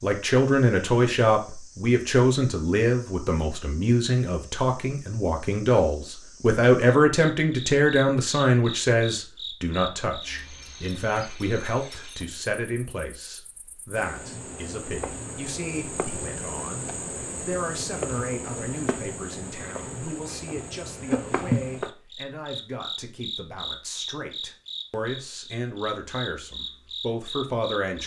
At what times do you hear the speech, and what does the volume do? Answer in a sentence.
You can hear the speech from 0.0 to 28.0 s, getting quieter.